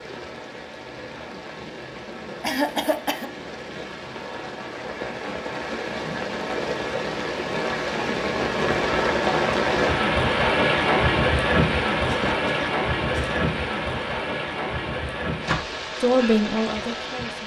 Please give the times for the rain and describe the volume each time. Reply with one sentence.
The rain can be heard from 0.0 to 17.4 s, getting louder then quieter.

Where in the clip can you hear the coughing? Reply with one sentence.
The coughing can be heard from 2.4 to 3.3 s and from 12.1 to 13.4 s.